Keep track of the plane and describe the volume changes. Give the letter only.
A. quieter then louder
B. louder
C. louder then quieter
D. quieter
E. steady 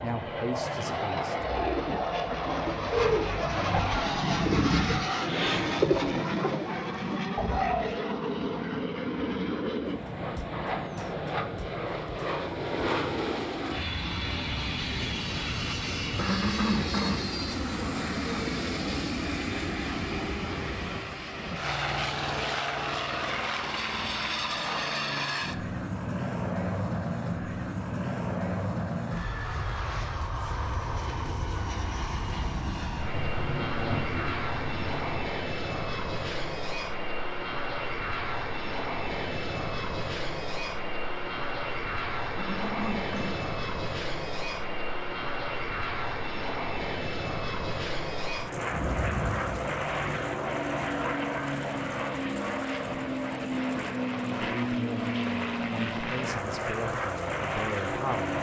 E.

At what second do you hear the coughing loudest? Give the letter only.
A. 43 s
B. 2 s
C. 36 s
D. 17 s
D.